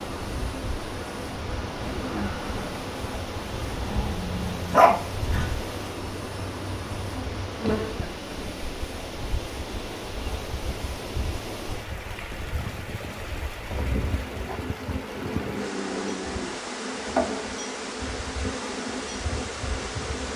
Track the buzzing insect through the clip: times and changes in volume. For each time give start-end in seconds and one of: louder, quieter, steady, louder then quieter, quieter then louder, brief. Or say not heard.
0.0-20.3 quieter then louder.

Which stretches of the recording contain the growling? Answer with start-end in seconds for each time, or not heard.
3.9-5.5, 15.2-16.8.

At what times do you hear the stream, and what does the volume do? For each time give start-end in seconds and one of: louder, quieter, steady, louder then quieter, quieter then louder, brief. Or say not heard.
0.0-20.3 steady.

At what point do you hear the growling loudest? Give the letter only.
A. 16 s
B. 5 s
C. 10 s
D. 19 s
B.